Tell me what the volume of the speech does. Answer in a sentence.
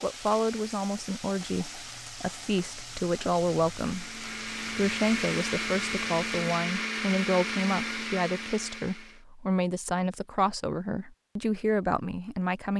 The loudness of the speech stays about the same.